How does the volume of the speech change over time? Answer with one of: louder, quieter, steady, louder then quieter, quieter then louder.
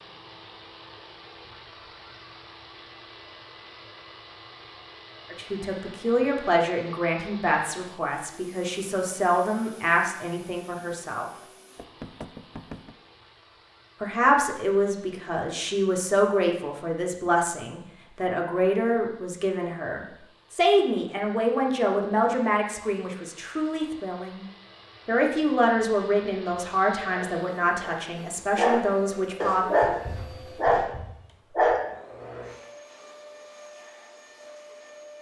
steady.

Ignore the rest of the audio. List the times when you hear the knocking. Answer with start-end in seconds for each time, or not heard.
11.8-12.9.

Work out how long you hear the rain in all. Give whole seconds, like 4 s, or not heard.
not heard.